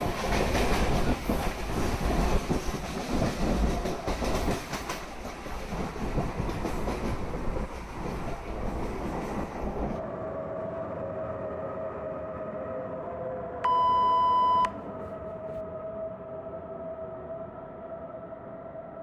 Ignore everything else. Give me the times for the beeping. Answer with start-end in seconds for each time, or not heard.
13.6-15.6.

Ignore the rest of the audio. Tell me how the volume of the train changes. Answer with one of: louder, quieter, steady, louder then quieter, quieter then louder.
quieter.